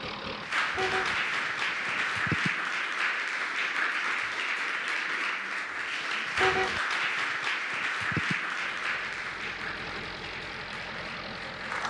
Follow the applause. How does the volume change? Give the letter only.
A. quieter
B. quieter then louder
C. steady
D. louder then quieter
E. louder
A.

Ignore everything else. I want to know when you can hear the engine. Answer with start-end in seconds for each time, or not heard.
0.0-2.2, 8.6-11.8.